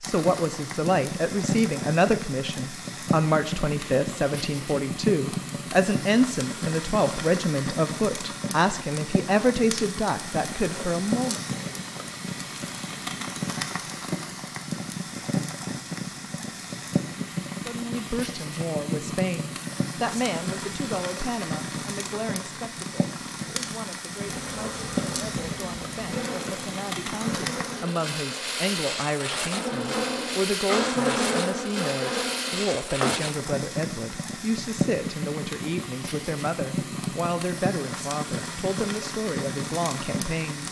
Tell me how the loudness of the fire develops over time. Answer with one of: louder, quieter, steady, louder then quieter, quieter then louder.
steady.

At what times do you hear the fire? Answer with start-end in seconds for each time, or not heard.
0.0-40.6.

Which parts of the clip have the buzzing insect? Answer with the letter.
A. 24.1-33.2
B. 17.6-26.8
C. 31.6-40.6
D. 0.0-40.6
A.